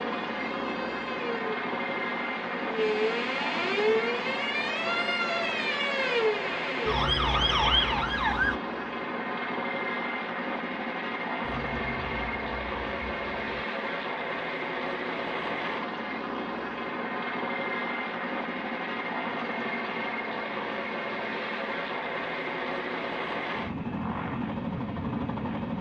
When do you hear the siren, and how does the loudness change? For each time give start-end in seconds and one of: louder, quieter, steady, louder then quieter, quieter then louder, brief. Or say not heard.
0.0-8.6 louder
11.4-13.6 brief.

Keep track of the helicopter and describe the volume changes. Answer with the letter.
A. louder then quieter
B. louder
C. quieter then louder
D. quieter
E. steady
E.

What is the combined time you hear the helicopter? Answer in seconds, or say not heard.
26 s.